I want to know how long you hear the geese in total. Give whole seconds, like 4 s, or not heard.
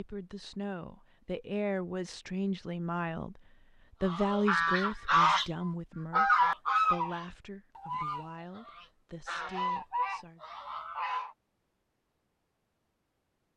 7 s.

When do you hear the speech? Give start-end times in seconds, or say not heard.
0.0-3.4, 4.0-10.4.